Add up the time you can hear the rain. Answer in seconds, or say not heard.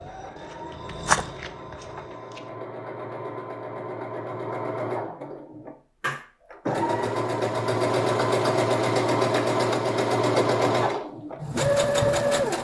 not heard.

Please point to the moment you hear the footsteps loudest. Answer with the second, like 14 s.
1 s.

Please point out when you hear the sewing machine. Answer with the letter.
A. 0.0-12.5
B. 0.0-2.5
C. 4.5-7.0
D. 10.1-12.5
A.